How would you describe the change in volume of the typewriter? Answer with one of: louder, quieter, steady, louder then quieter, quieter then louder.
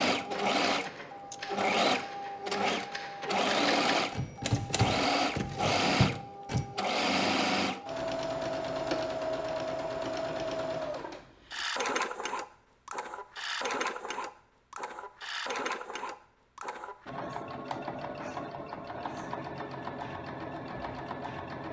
louder.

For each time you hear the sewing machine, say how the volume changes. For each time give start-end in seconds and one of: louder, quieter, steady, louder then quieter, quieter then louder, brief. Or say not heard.
0.0-21.6 quieter.